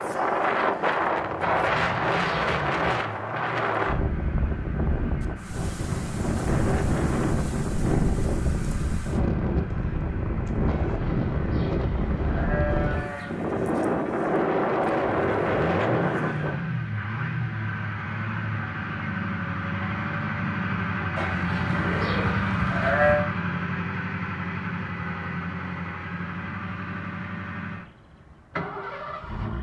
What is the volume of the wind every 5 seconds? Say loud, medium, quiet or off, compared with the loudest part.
loud, loud, loud, loud, off, off.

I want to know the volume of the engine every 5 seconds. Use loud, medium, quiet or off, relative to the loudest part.
medium, quiet, quiet, loud, loud, medium.